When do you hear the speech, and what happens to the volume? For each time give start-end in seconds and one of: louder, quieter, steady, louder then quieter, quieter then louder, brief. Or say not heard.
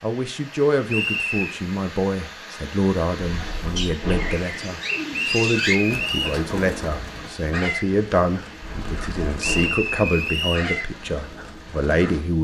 0.0-12.3 steady.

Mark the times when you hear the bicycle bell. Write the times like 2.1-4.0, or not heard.
3.2-4.5, 8.6-9.8.